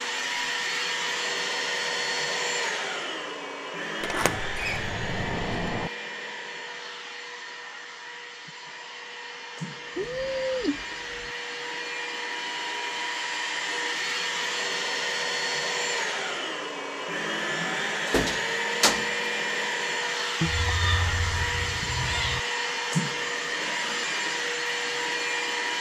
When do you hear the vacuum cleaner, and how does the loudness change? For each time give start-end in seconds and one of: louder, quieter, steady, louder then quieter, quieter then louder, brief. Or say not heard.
0.0-25.7 quieter then louder.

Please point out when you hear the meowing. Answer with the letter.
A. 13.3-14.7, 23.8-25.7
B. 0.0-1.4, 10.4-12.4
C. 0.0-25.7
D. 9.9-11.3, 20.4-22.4
D.